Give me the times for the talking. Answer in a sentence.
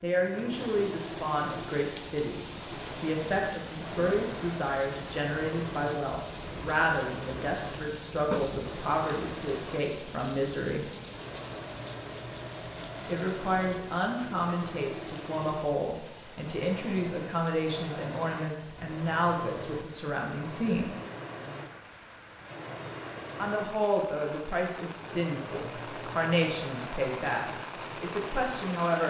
The talking can be heard from 0.0 to 10.8 s, from 13.1 to 20.9 s and from 23.4 to 29.0 s.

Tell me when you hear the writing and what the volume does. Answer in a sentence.
The writing can't be heard in this clip.